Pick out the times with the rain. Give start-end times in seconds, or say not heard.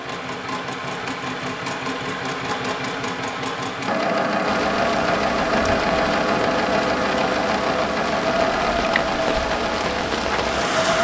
4.5-10.9.